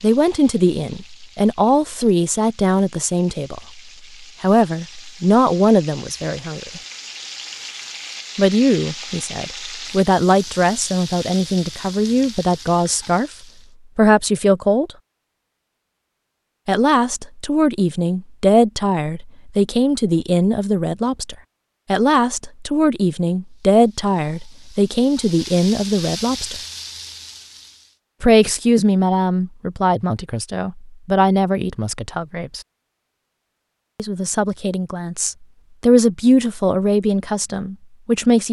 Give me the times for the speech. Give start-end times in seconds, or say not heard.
0.0-6.8, 8.3-13.3, 13.9-14.9, 16.6-26.6, 28.2-32.6, 34.0-38.4.